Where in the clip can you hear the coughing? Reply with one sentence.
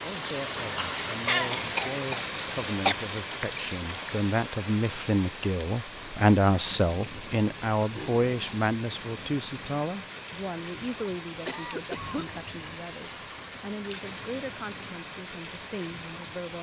The coughing can be heard from 1.1 to 3.0 s, from 8.0 to 8.7 s and from 11.2 to 12.4 s.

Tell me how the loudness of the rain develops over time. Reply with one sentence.
The loudness of the rain goes down.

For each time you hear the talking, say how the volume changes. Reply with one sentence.
You can hear the talking from 0.0 to 16.5 s, getting louder then quieter.